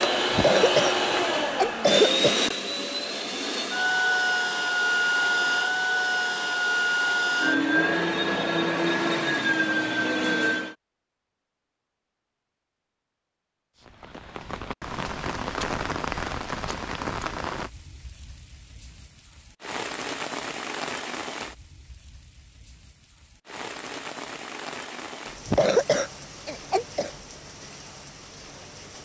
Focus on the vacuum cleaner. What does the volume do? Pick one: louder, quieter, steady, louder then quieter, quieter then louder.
steady.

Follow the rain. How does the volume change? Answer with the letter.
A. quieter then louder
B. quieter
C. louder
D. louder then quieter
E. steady
B.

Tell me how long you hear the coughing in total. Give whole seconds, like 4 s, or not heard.
4 s.